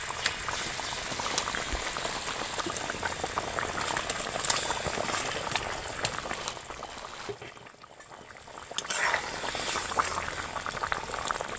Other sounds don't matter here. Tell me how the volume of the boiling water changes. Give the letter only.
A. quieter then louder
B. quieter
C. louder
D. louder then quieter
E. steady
A.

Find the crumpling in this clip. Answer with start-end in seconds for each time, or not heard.
1.0-2.7, 6.2-7.3.